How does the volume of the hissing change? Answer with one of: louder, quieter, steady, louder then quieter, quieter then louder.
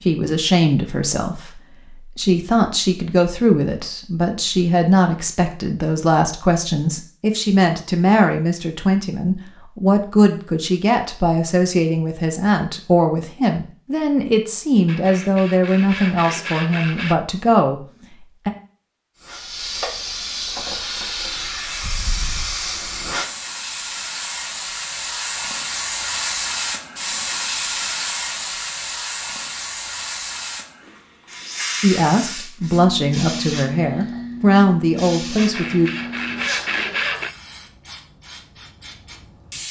quieter.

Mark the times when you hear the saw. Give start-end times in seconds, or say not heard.
14.8-17.2, 35.4-37.4.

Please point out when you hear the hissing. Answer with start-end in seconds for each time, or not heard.
19.2-39.6.